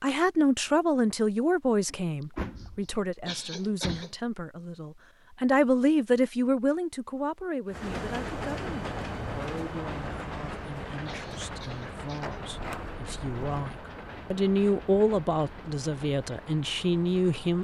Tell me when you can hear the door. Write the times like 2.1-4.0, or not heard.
1.9-4.0, 12.2-13.7.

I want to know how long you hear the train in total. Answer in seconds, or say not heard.
10 s.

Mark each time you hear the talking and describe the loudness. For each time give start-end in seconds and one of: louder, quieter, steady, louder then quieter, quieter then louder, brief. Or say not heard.
0.0-17.5 quieter then louder.